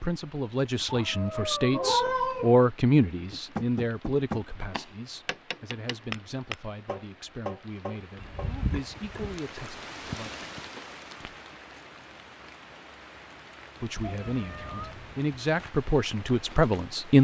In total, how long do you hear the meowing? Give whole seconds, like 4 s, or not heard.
4 s.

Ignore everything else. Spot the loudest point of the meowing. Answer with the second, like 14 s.
2 s.